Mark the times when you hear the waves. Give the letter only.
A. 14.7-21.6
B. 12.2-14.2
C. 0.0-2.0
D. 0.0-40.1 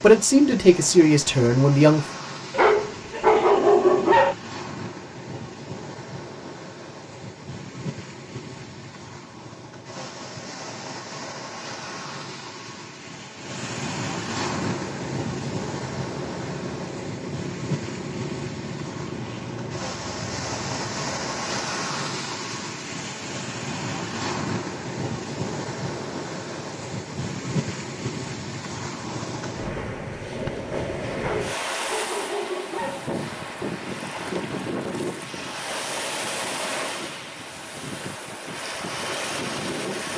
D.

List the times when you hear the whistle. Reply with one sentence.
You can't hear the whistle here.